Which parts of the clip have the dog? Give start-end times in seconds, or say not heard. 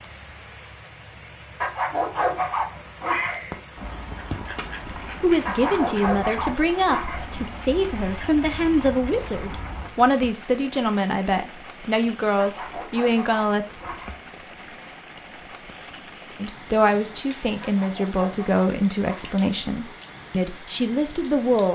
1.6-3.4, 5.5-7.2, 12.3-14.2, 17.6-19.4.